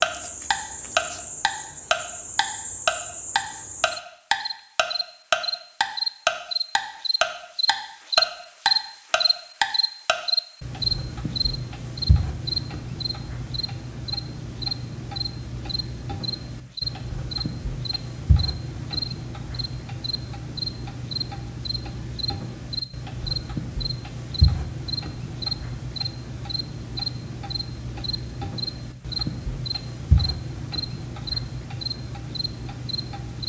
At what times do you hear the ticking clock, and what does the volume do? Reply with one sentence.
The ticking clock can be heard from 0.0 to 33.4 s, getting quieter.